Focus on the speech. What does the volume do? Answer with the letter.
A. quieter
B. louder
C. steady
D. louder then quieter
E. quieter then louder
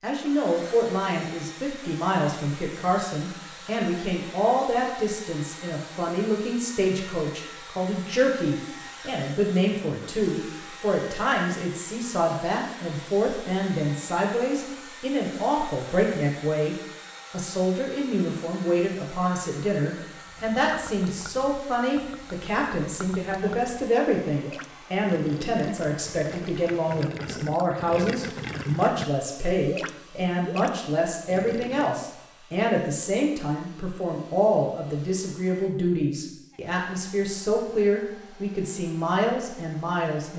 C.